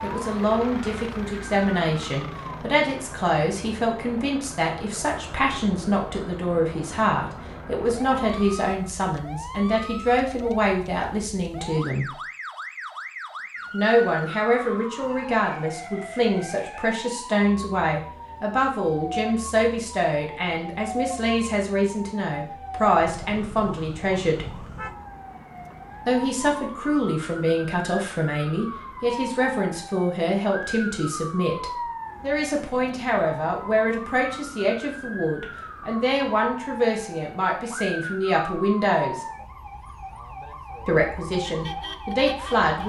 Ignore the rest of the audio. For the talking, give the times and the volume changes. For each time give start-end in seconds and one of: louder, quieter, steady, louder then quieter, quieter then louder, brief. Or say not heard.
0.0-12.1 steady
13.7-24.6 steady
26.1-39.2 steady
40.9-42.8 brief.